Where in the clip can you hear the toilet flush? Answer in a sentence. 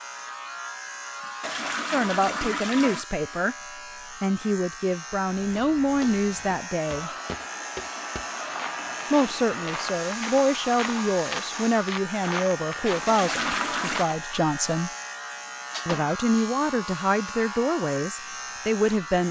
You can hear the toilet flush from 1.4 to 3.0 s, from 7.8 to 9.1 s and from 13.1 to 14.1 s.